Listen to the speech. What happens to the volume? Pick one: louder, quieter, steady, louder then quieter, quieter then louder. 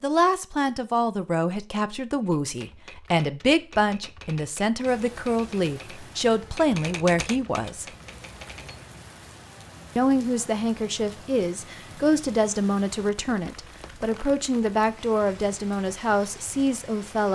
steady.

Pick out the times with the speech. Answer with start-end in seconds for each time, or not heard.
0.0-7.8, 9.9-17.3.